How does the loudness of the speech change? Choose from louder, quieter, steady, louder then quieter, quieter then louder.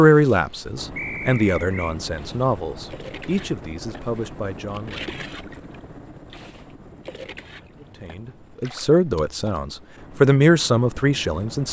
quieter then louder.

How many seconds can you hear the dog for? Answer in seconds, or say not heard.
not heard.